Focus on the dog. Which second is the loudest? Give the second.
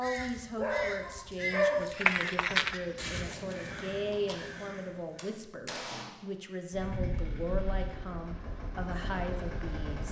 2 s.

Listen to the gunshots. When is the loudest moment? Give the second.
6 s.